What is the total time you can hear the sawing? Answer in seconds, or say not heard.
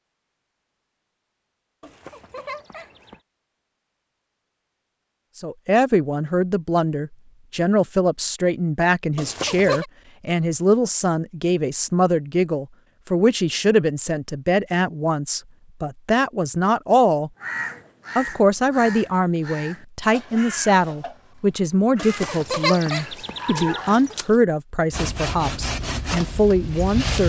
2 s.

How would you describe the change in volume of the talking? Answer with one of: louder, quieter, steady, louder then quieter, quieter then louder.
steady.